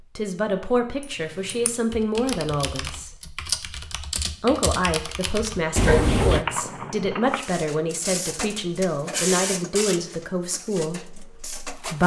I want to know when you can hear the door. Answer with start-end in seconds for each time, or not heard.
5.8-6.5.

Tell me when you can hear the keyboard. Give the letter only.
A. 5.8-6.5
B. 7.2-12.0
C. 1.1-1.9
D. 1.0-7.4
D.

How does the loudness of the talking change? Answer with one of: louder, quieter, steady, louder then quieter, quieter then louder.
steady.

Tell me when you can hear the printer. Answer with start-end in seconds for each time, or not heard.
7.2-12.0.